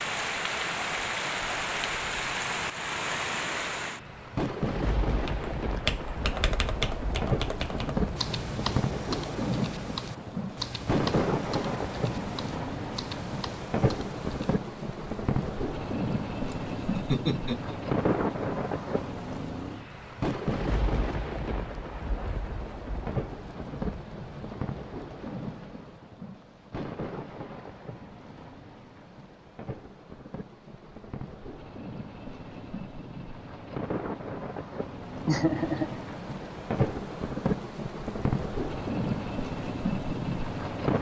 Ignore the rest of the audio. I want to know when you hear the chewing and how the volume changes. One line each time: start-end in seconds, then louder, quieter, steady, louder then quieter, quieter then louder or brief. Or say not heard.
not heard.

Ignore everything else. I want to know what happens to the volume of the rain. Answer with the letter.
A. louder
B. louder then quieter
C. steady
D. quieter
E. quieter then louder
E.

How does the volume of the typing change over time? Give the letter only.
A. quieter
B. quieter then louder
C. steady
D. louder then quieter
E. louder
A.